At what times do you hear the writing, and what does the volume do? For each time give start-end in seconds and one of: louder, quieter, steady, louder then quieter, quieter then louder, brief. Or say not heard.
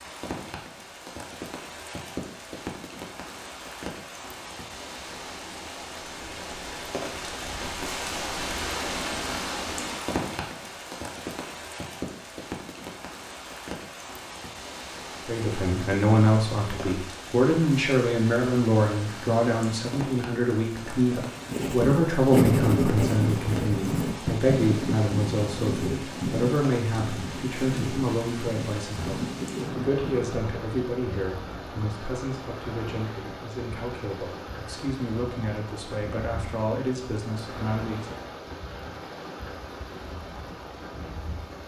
21.4-30.3 quieter.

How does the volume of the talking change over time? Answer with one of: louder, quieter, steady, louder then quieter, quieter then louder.
quieter.